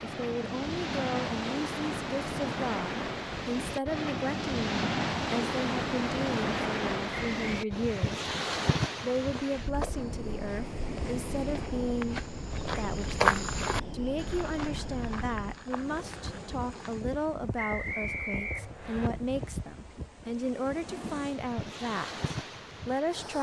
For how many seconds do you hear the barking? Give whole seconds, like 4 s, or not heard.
not heard.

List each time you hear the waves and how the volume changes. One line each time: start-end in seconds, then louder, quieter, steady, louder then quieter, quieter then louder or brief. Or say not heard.
0.0-23.3 quieter.